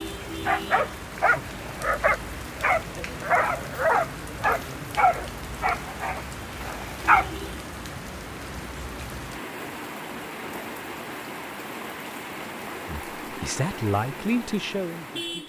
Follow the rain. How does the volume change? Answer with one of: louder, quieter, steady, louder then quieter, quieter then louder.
steady.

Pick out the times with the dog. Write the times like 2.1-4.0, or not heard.
0.1-7.3.